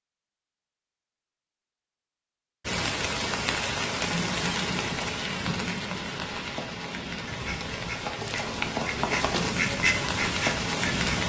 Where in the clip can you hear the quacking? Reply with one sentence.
The quacking can be heard from 7.2 to 11.1 s.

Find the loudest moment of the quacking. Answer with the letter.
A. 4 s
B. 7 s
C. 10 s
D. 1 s
C.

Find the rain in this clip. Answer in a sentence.
You can hear the rain from 2.6 to 11.2 s.